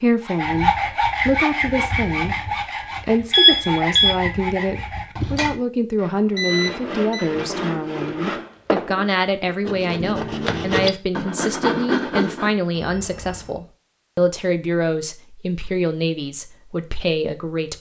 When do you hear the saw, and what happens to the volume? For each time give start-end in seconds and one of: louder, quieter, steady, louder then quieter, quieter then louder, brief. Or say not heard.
0.2-12.5 quieter then louder.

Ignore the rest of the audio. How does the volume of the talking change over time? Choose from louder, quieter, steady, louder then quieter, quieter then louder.
steady.